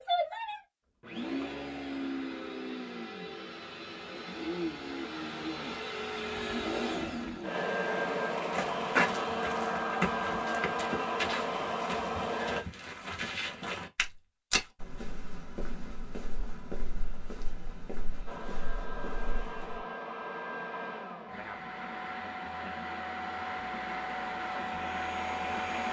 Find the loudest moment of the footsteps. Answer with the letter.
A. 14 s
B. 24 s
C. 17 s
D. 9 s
D.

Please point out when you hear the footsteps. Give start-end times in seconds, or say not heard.
8.4-19.9.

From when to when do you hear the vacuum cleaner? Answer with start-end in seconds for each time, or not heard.
0.0-12.7, 18.2-25.8.